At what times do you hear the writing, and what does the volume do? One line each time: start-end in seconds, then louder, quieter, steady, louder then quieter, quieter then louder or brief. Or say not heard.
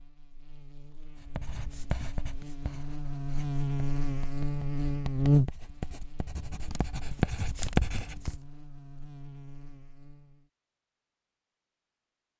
1.2-8.4 quieter then louder.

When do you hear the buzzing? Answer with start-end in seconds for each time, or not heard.
0.0-10.4.